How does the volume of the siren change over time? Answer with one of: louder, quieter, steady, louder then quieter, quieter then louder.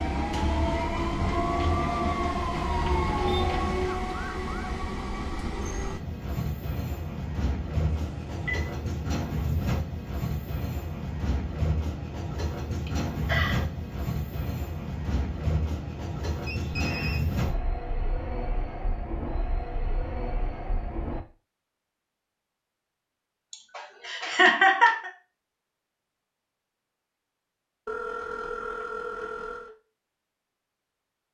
steady.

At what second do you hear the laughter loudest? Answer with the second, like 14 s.
25 s.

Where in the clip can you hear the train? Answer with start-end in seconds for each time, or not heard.
0.0-21.2.